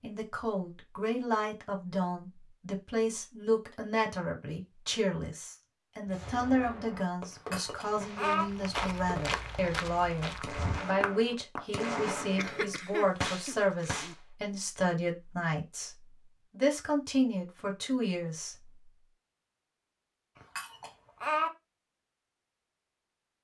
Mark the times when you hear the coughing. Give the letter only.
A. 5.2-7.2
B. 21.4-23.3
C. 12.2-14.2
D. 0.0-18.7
C.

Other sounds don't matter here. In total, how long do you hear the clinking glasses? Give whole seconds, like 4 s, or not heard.
2 s.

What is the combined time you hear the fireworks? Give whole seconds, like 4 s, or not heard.
8 s.